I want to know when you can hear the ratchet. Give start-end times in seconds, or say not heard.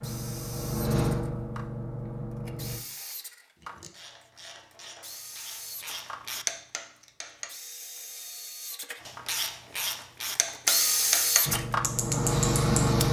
3.6-7.5, 9.0-13.0.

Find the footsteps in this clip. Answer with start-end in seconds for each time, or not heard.
not heard.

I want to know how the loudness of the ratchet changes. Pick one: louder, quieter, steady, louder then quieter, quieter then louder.
louder.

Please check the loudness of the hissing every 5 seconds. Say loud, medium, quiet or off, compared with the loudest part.
medium, off, loud.